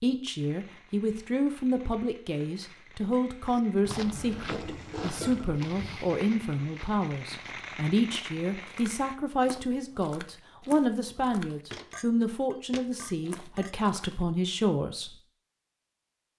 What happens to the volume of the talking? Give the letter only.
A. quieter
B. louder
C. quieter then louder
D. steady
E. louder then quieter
D.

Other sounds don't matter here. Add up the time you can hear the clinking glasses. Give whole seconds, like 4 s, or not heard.
3 s.